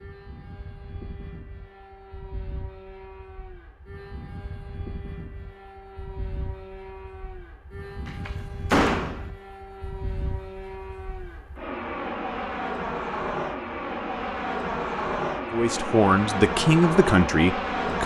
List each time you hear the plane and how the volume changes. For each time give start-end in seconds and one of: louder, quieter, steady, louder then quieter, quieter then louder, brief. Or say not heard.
0.0-18.0 louder.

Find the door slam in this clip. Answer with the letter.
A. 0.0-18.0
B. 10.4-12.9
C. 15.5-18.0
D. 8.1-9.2
D.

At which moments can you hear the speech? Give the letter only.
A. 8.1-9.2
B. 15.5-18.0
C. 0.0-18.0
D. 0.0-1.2
B.